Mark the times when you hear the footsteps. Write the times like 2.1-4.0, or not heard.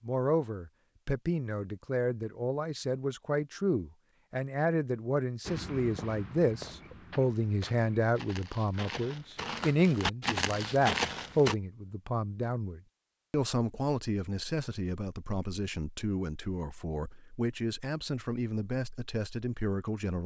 5.5-11.6.